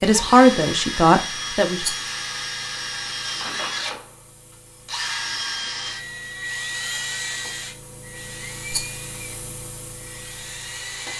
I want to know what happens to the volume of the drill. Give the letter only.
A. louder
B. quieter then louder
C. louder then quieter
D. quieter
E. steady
D.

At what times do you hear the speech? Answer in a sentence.
You can hear the speech from 0.0 to 1.9 s.